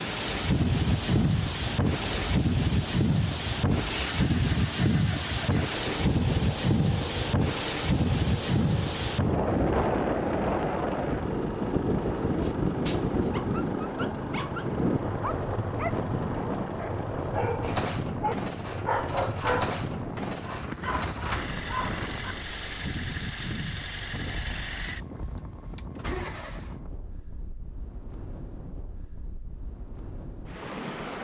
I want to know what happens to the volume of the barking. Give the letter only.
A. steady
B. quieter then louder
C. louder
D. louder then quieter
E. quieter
D.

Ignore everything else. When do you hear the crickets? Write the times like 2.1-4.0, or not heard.
not heard.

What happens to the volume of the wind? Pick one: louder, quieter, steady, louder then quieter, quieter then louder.
quieter.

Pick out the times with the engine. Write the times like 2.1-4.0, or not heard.
0.0-26.8.